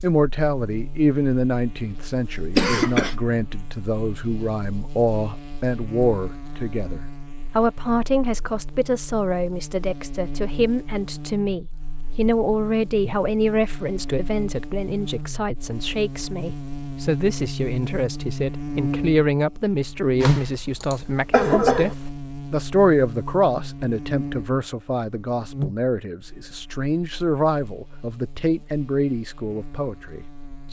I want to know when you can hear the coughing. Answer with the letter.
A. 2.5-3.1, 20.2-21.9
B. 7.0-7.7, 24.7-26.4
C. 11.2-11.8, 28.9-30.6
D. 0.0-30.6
A.